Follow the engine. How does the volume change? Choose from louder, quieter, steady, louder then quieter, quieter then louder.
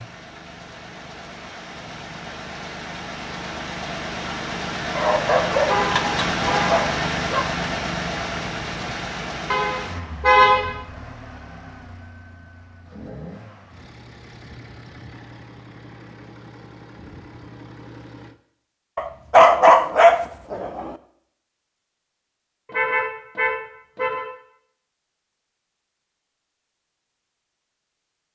louder then quieter.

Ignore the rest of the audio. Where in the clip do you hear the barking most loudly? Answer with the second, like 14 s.
20 s.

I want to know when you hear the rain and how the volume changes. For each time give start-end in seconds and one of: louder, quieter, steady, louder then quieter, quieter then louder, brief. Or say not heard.
not heard.